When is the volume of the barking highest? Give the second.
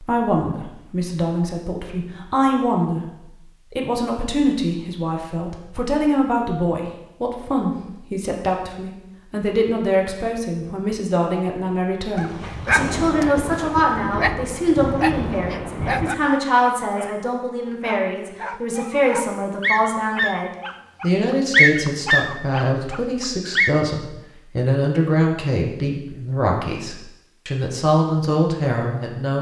22 s.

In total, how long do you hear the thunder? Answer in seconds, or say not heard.
4 s.